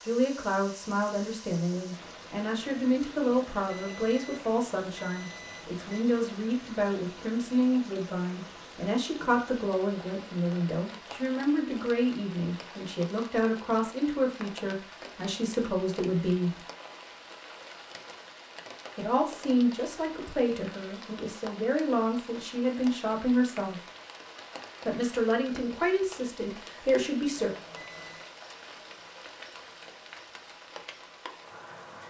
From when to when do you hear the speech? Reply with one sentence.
You can hear the speech from 0.1 to 16.6 s, from 18.9 to 23.8 s and from 24.9 to 27.5 s.